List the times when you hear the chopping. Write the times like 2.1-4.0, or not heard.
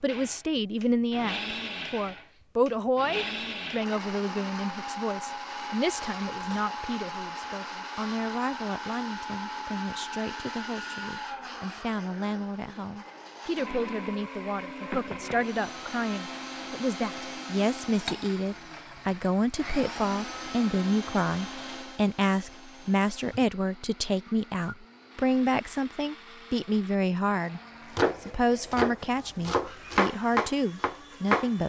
27.9-31.5.